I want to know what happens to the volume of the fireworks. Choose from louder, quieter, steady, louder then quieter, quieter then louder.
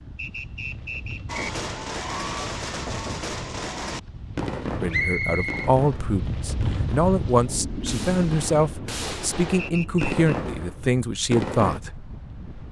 quieter then louder.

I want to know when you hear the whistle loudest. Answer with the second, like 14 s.
5 s.